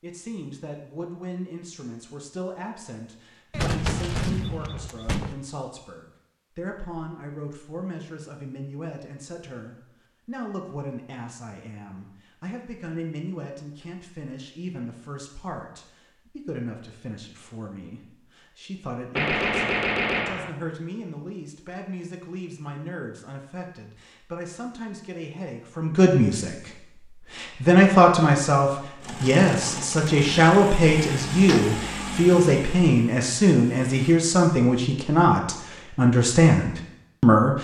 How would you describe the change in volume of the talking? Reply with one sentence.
The volume of the talking goes up.